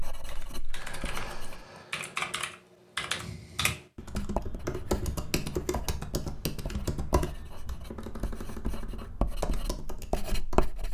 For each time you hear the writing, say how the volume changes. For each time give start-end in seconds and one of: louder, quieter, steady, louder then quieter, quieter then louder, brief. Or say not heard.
0.0-1.6 brief
4.0-10.8 louder.